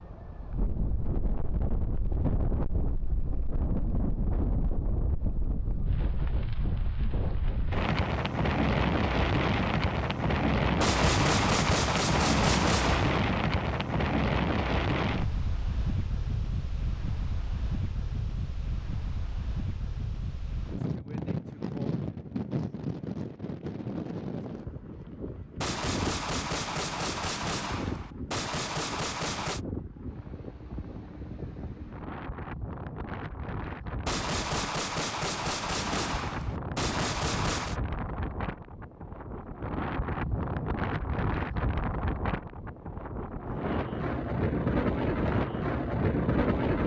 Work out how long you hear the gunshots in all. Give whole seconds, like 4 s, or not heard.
10 s.